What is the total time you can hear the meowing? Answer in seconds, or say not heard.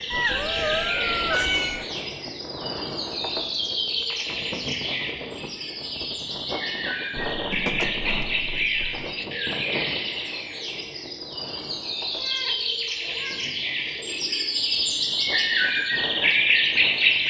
5 s.